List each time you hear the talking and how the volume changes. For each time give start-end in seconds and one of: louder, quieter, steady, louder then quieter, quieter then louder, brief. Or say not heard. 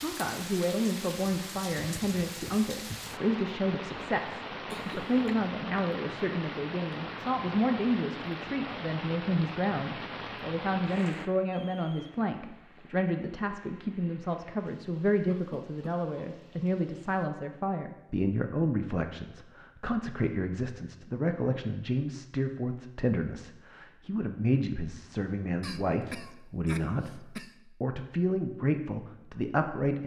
0.0-30.0 steady.